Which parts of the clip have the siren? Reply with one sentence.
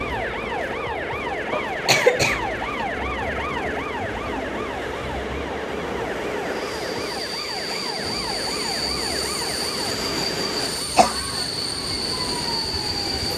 The siren can be heard from 0.0 to 13.2 s.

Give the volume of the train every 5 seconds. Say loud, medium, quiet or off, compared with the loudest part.
medium, loud, loud.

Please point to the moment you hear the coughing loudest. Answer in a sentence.
The volume of the coughing peaks at 2 seconds.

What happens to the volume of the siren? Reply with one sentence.
The loudness of the siren goes down.